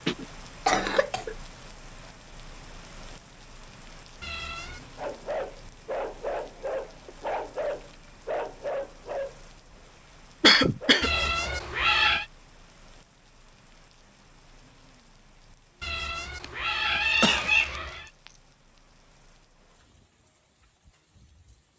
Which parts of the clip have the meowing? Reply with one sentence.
You can hear the meowing from 4.2 to 4.9 s, from 11.0 to 12.2 s and from 15.8 to 18.1 s.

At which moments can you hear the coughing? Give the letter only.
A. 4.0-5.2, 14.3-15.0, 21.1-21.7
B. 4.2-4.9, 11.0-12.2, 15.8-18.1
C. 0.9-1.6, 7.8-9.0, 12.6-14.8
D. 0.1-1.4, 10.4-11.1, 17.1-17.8
D.